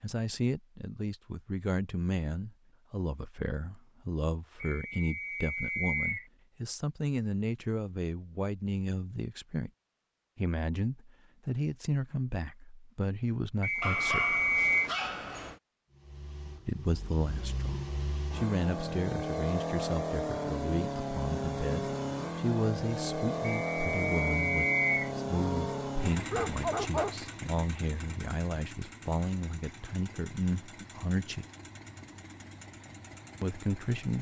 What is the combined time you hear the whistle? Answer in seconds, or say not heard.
5 s.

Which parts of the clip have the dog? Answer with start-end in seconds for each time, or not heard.
13.8-15.6, 25.3-27.2.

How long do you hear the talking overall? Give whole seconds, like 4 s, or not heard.
29 s.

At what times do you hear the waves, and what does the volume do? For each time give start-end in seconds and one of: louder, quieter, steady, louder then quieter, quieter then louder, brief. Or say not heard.
not heard.